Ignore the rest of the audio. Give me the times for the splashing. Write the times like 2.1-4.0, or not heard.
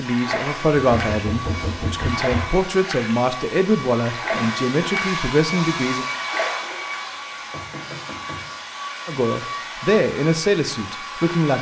0.0-1.2, 1.9-3.1, 4.0-5.2, 6.1-7.0.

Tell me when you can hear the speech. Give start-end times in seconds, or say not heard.
0.0-6.0, 9.1-11.5.